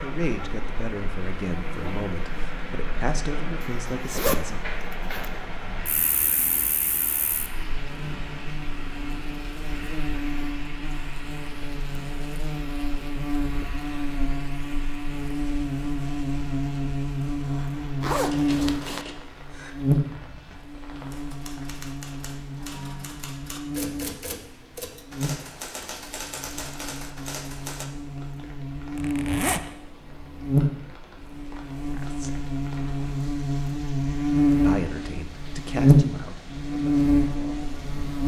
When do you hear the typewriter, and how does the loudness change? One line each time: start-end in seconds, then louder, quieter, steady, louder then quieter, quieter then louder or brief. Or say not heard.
18.3-27.9 louder.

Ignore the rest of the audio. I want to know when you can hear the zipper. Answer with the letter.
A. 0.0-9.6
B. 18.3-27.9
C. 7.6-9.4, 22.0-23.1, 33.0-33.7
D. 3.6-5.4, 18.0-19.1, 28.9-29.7
D.